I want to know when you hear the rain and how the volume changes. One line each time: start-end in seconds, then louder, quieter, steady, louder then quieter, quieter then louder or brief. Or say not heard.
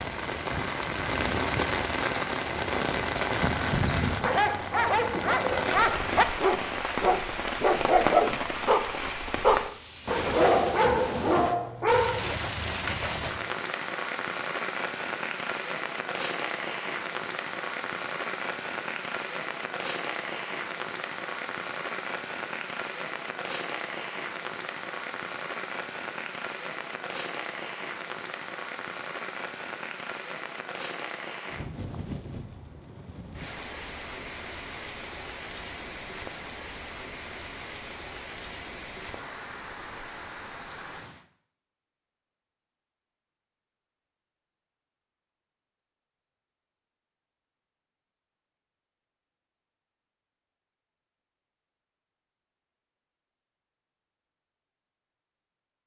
0.0-41.2 quieter.